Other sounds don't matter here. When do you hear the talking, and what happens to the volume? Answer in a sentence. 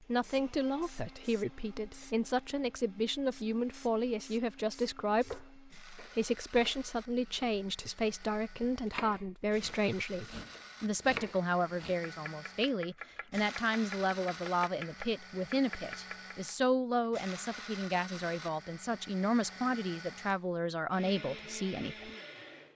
The talking can be heard from 0.0 to 22.1 s, at a steady volume.